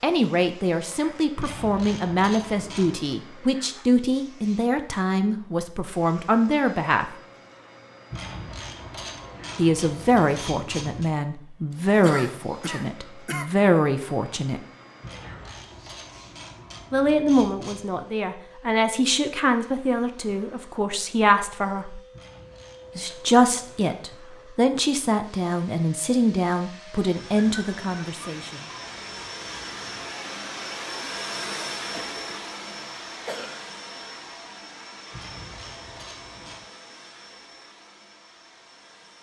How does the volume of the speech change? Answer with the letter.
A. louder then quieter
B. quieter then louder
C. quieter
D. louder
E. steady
E.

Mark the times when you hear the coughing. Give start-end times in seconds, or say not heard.
12.0-13.4, 31.9-33.6.